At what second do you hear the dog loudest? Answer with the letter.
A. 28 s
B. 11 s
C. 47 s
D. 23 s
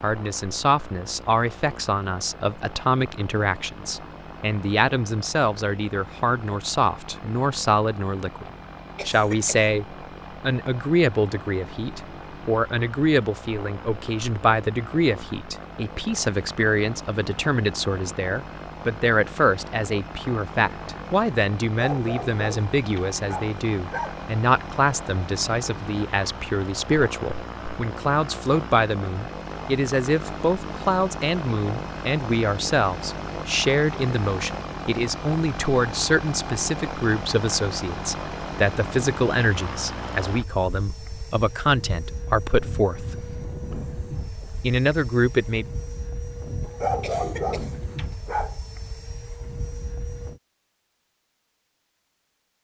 C.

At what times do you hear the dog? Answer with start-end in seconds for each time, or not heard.
21.6-24.1, 46.6-48.5.